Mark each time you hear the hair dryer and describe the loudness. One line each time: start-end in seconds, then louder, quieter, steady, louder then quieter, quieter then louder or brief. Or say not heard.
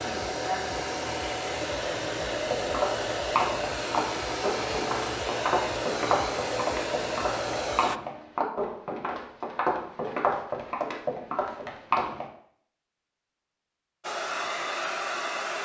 0.0-8.0 steady
14.0-15.6 brief.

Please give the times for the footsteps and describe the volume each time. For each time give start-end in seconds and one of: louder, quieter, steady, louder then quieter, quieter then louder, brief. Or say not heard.
2.5-12.2 steady.